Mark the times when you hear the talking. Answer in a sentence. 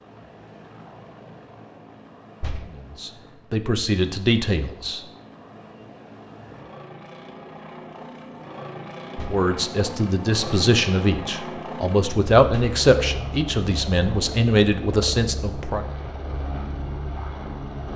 You can hear the talking from 2.6 to 5.0 s and from 9.3 to 15.8 s.